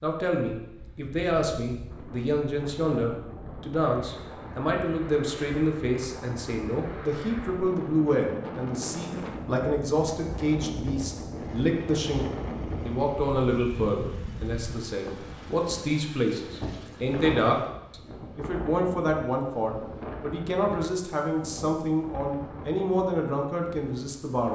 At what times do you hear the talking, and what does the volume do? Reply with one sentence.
The talking can be heard from 0.0 to 24.5 s, at a steady volume.